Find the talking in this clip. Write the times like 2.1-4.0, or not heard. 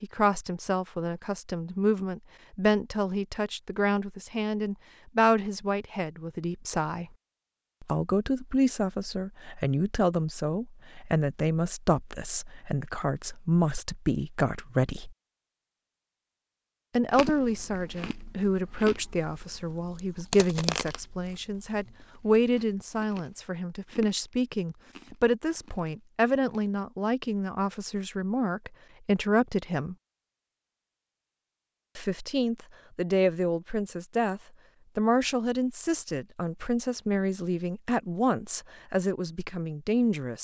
0.0-7.0, 7.8-15.2, 16.9-29.9, 31.9-40.4.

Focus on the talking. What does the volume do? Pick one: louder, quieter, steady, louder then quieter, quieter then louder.
steady.